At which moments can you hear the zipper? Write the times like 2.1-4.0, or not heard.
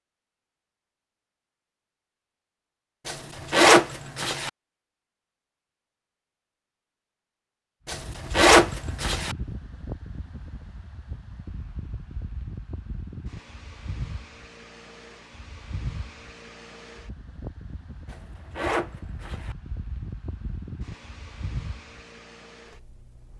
3.0-4.5, 7.8-9.3, 18.1-19.6.